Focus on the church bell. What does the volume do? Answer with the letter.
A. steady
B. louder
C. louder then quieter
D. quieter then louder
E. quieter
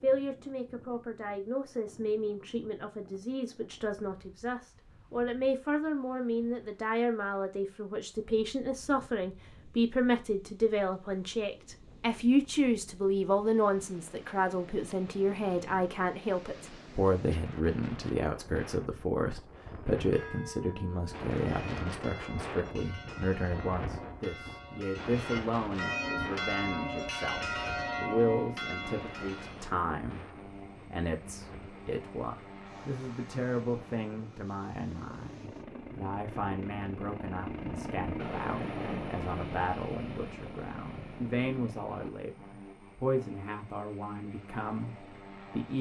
B.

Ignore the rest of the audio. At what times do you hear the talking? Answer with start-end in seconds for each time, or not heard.
0.0-45.7.